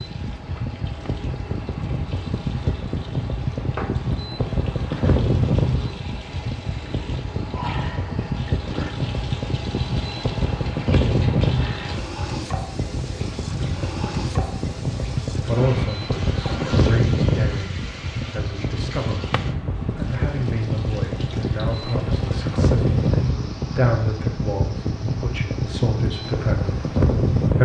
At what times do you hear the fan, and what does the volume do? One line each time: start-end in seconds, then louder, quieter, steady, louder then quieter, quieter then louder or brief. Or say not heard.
0.0-27.5 steady.